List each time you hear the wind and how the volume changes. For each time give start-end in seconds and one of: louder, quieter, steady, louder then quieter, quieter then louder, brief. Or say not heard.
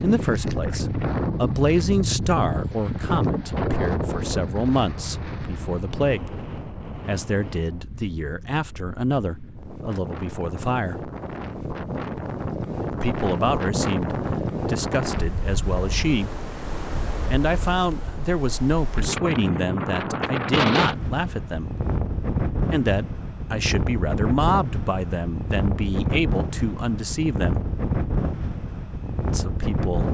0.0-30.0 quieter then louder.